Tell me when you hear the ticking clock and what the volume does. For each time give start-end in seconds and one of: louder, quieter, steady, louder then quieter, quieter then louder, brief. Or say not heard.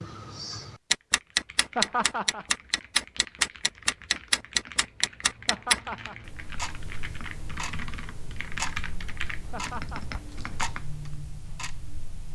0.0-12.2 quieter.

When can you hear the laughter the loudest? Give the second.
2 s.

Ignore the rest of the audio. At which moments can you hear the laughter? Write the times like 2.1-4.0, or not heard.
1.8-2.5, 5.5-6.2, 9.5-10.2.